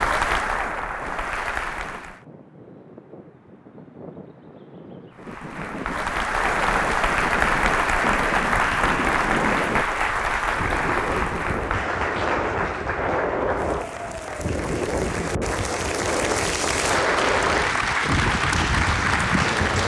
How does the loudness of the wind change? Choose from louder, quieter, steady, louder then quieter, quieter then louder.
louder.